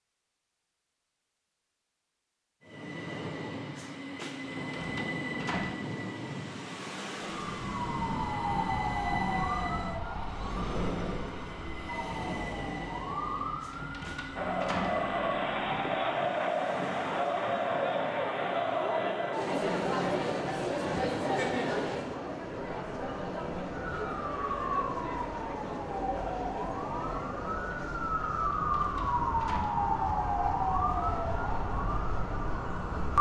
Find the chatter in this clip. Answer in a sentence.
You can hear the chatter from 14.3 to 33.1 s.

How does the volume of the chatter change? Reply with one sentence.
The volume of the chatter goes down.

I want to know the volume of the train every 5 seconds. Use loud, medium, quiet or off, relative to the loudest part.
loud, loud, loud, medium, medium, medium, medium.